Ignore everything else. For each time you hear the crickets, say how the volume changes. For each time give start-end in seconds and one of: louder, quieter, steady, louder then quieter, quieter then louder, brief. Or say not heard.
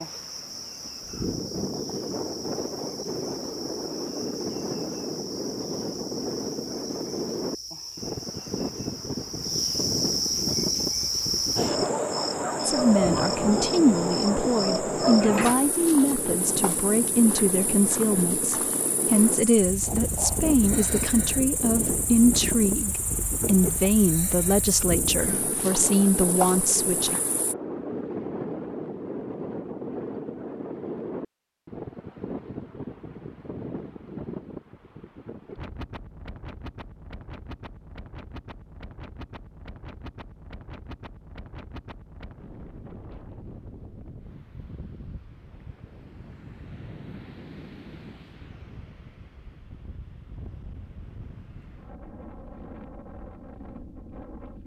0.0-27.6 louder then quieter.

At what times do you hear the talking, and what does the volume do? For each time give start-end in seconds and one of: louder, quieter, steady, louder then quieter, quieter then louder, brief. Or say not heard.
12.7-27.1 steady.